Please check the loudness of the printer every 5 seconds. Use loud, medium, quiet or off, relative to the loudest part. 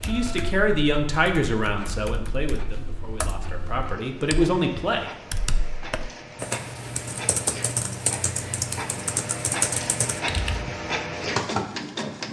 quiet, medium, loud.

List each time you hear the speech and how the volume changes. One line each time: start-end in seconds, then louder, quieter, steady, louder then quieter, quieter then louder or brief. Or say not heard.
0.0-5.1 quieter then louder.